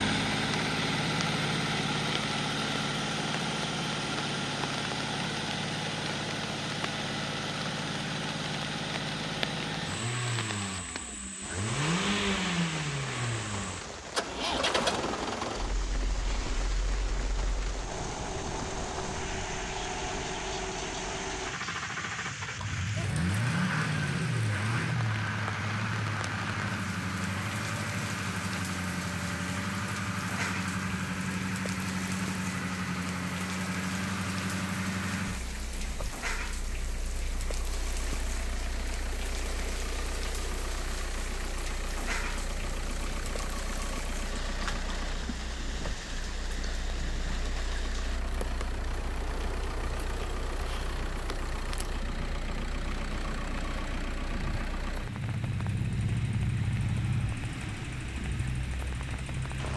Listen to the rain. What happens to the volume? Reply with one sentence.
The loudness of the rain stays about the same.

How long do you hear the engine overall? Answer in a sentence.
The engine can be heard for 60 seconds in total.